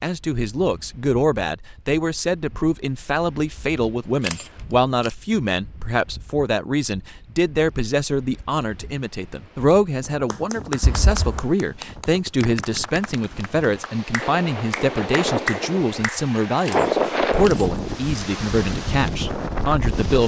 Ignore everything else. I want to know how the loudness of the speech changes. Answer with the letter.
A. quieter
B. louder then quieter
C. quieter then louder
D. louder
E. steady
E.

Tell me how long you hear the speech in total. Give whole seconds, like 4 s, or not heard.
20 s.